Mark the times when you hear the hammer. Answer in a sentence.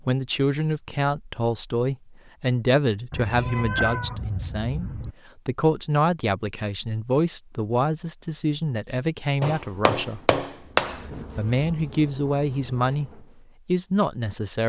The hammer can be heard from 9.4 to 11.2 s.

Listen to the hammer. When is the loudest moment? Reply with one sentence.
The volume of the hammer peaks at 11 seconds.